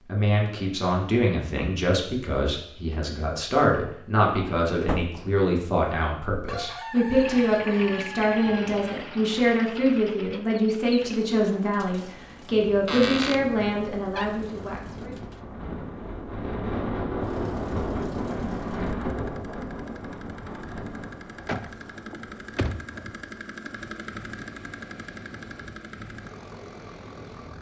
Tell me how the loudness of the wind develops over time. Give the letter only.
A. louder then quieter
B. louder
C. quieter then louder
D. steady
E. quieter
A.